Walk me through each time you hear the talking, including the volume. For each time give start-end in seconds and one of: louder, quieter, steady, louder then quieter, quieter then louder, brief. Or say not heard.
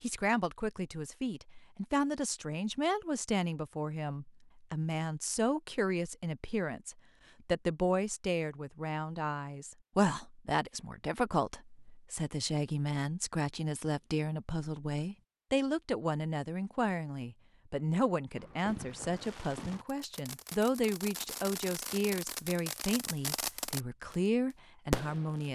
0.0-25.5 steady.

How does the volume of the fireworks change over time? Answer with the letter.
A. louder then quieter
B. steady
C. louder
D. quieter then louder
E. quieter
C.